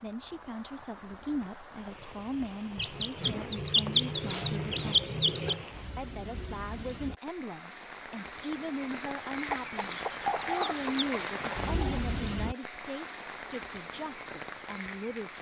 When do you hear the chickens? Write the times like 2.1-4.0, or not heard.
2.8-5.7, 9.5-12.0.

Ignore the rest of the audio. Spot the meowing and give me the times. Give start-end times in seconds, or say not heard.
not heard.